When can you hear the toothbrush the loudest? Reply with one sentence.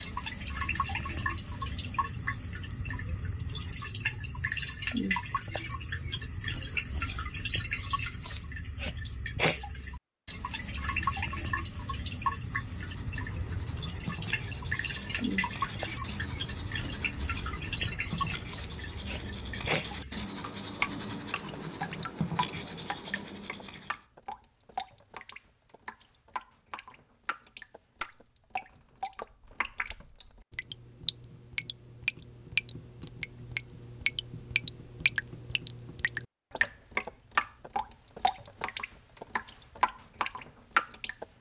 The loudest moment of the toothbrush is at 22 seconds.